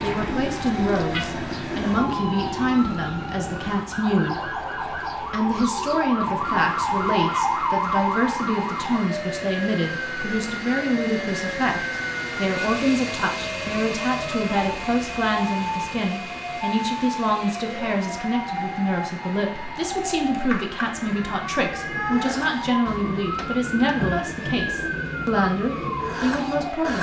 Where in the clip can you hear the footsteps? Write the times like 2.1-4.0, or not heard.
not heard.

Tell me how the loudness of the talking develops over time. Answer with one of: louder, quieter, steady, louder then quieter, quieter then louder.
steady.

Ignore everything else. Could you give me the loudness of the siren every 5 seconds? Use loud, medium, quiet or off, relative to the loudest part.
medium, loud, medium, medium, medium, medium.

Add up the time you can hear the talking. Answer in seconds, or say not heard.
26 s.